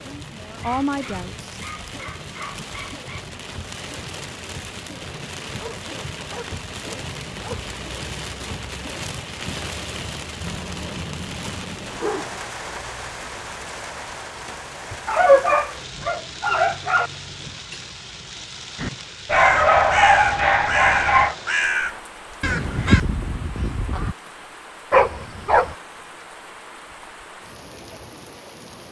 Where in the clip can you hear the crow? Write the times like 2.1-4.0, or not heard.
18.8-24.1.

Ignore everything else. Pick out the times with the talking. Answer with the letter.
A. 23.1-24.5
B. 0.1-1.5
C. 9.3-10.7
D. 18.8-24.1
B.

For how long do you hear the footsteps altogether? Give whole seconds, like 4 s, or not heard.
not heard.